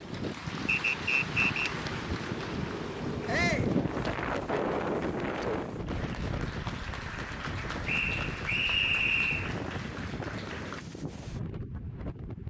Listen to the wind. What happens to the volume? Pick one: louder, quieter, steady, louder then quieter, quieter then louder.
louder then quieter.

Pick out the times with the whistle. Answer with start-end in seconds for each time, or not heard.
0.7-1.8, 7.8-9.5.